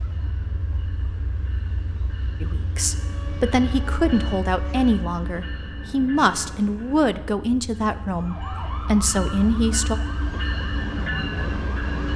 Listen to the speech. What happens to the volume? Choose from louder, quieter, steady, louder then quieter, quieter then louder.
steady.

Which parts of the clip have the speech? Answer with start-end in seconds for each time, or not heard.
2.4-9.9.